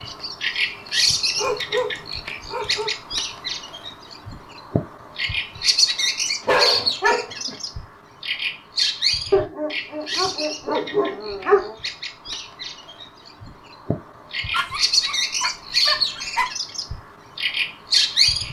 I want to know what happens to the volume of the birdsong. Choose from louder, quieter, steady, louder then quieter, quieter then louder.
quieter then louder.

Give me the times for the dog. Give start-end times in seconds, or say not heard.
1.4-2.9, 6.0-7.5, 9.3-11.8, 14.5-16.5.